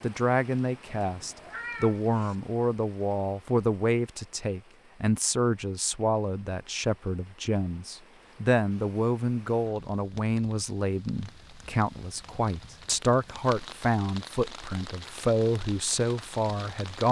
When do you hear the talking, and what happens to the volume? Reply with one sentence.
The talking can be heard from 0.0 to 17.0 s, at a steady volume.